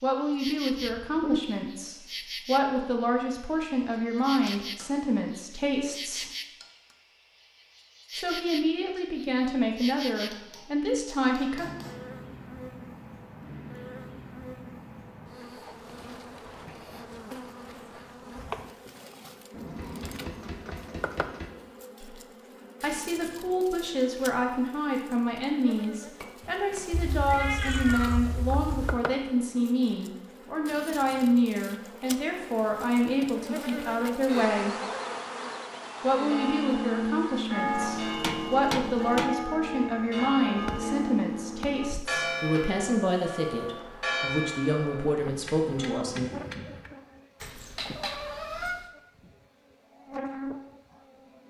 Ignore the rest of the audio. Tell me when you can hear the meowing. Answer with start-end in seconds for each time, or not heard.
0.8-1.4, 26.9-29.0, 47.4-48.9.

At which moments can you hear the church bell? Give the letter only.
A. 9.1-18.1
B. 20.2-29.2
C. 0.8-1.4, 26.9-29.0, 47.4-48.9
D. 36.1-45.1
D.